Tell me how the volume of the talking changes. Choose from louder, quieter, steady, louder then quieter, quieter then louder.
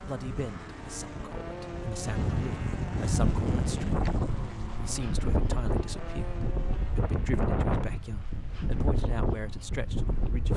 steady.